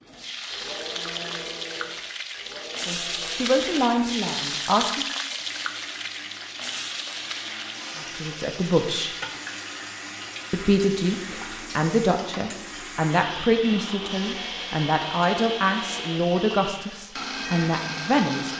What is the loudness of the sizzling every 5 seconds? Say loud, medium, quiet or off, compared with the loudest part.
loud, loud, medium, medium.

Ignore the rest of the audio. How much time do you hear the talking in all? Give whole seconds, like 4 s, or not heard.
11 s.